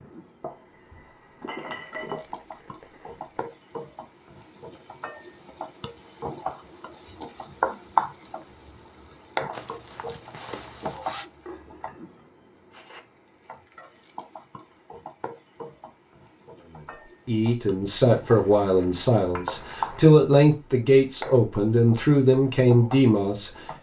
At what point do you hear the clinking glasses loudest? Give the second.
2 s.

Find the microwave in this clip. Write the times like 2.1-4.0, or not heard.
not heard.